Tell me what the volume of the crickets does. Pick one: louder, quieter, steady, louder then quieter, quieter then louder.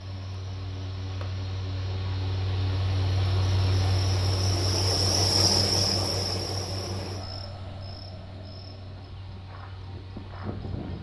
louder then quieter.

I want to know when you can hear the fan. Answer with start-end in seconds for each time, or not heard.
0.0-10.9.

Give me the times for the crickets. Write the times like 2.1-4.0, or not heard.
0.0-10.9.